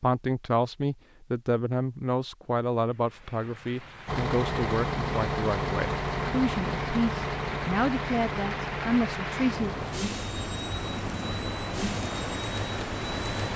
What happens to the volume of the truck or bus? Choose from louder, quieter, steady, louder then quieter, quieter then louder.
quieter.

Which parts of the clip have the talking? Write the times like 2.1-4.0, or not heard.
0.0-9.7.